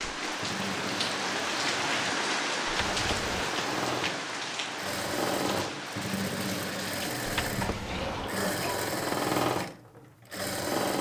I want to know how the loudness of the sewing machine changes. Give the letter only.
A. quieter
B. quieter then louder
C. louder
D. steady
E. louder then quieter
C.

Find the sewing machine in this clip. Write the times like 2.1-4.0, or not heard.
0.2-10.9.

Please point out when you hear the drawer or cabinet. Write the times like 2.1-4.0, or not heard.
2.9-3.5, 7.2-8.3.